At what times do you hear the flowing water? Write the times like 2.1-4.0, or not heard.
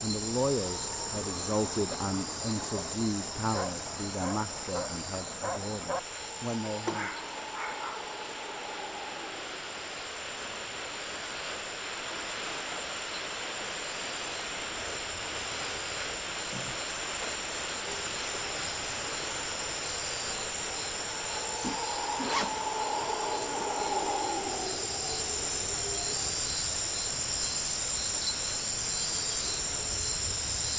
0.0-30.7.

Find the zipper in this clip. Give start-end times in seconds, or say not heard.
21.6-23.6.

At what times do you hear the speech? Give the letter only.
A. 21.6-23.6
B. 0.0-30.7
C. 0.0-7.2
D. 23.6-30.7
C.